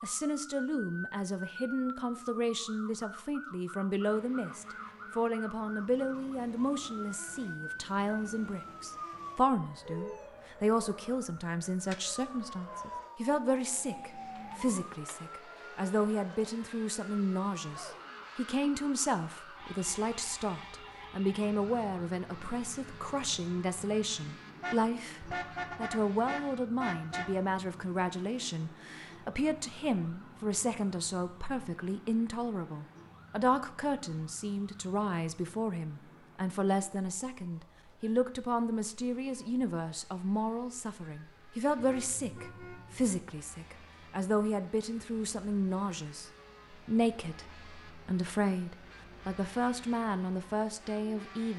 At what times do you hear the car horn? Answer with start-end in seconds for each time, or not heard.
9.8-10.2, 24.6-27.3, 41.8-43.2.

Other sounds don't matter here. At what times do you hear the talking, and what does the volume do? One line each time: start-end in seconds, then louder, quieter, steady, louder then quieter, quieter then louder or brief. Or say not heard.
0.0-51.5 steady.